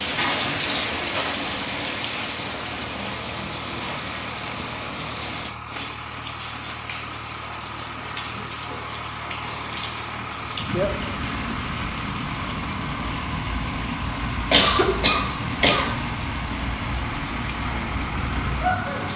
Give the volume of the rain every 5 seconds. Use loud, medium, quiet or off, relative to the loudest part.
loud, medium, loud, loud.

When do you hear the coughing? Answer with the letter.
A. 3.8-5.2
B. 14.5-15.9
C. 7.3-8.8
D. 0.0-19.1
B.